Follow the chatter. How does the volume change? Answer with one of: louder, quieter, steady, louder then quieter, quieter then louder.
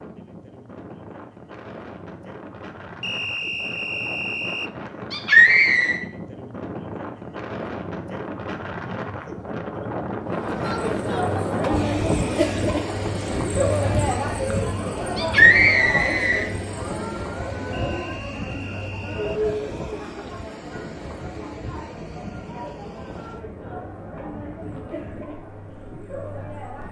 quieter.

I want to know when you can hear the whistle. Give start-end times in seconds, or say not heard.
3.0-4.7, 17.7-19.4.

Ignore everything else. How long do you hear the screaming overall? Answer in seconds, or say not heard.
2 s.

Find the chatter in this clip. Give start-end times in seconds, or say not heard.
10.2-26.8.